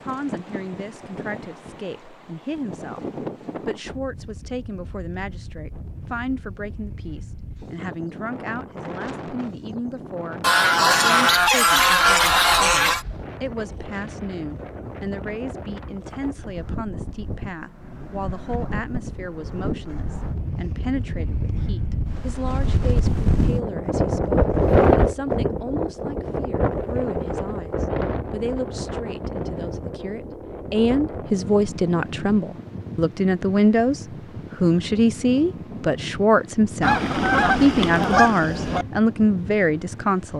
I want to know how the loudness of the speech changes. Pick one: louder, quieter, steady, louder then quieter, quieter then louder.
louder.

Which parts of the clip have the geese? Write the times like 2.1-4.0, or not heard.
10.4-13.1, 36.8-38.9.